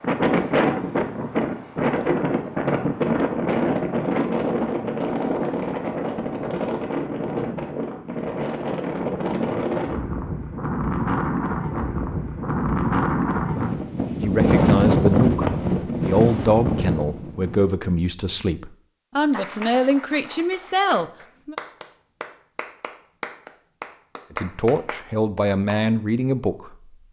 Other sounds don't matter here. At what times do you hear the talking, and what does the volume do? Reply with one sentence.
You can hear the talking from 14.2 to 21.6 s, at a steady volume; and briefly from 24.3 to 26.9 s.